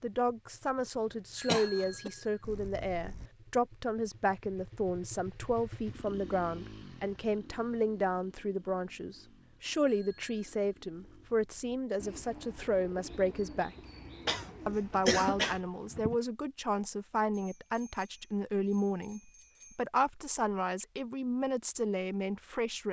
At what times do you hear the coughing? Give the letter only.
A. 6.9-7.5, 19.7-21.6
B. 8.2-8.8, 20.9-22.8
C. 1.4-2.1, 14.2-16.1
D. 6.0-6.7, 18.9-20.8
C.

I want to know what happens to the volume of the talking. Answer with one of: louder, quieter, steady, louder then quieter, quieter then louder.
steady.